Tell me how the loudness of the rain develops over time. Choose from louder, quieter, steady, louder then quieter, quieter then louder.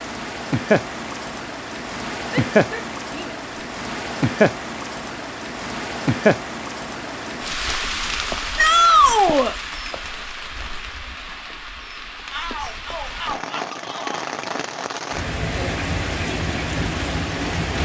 quieter then louder.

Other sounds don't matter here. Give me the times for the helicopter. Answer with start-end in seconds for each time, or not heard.
not heard.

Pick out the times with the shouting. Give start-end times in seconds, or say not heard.
2.3-3.4, 8.6-9.6, 12.3-14.2.